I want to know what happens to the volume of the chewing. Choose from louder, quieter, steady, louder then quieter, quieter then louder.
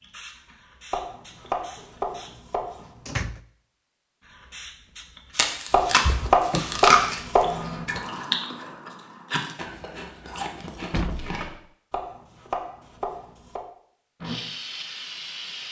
louder then quieter.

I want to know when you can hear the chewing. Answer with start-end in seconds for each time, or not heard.
5.3-11.5.